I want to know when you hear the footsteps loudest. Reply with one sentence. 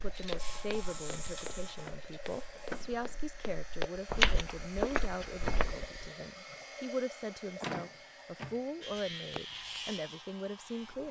The loudest moment of the footsteps is at 4 seconds.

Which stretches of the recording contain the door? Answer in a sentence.
You can hear the door from 2.5 to 3.2 s and from 7.6 to 8.6 s.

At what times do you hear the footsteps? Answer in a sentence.
The footsteps can be heard from 0.1 to 6.1 s.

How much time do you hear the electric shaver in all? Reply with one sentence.
You can hear the electric shaver for 5 seconds altogether.